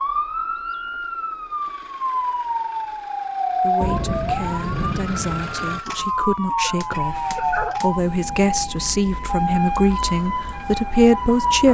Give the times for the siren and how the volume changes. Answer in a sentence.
You can hear the siren from 0.0 to 11.7 s, at a steady volume.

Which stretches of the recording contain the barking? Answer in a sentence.
You can hear the barking from 6.6 to 7.8 s.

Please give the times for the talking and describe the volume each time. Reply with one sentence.
The talking can be heard from 3.6 to 11.7 s, getting louder.